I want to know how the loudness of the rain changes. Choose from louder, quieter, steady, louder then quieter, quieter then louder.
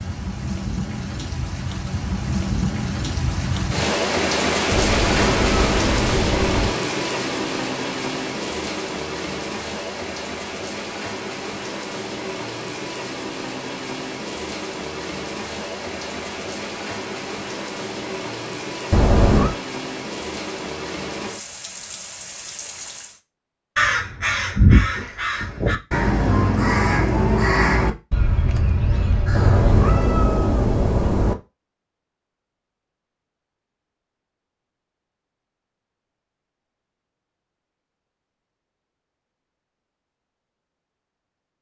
quieter.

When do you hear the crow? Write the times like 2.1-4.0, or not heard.
23.8-30.0.